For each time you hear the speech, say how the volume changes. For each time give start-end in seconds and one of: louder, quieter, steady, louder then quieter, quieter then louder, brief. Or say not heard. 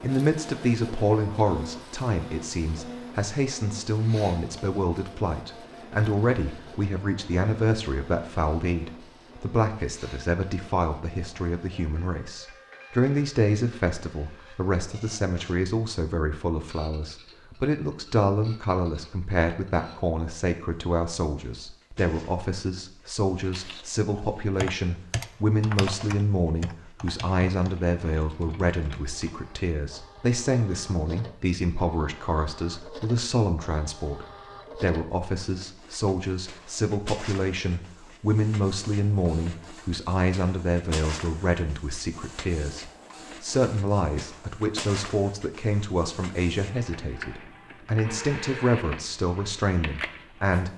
0.0-50.7 steady.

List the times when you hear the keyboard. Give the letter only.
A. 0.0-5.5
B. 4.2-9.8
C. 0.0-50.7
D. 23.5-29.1
D.